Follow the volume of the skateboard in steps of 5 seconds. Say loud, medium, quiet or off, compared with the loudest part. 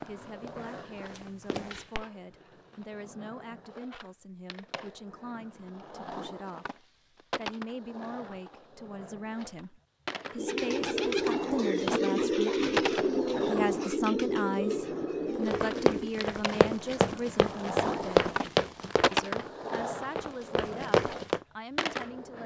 quiet, medium, loud, loud, loud.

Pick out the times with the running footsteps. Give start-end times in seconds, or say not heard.
0.0-2.0, 15.5-21.4.